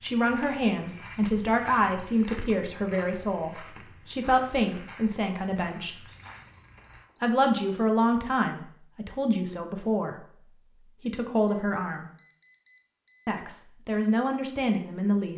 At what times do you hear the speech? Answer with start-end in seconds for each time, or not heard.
0.0-6.0, 7.2-12.1, 13.2-15.3.